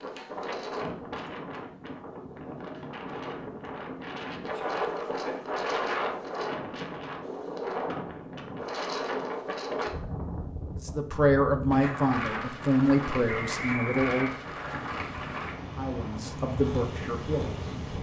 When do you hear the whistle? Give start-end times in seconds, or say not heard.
13.2-14.8.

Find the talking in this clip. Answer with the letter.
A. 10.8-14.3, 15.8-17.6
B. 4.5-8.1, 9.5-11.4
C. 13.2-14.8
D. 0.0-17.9
A.